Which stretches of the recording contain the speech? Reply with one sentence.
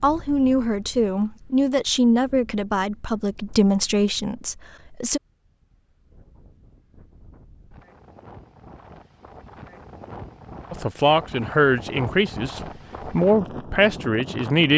The speech can be heard from 0.0 to 5.2 s and from 10.7 to 14.7 s.